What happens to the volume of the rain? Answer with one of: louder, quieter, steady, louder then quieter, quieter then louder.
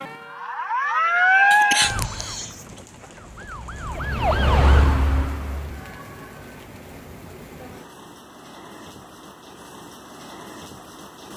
steady.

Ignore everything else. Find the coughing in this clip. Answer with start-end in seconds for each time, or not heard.
1.5-2.6.